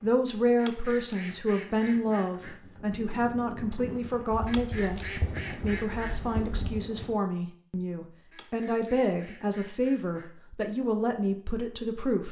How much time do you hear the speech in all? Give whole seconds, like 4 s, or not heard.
12 s.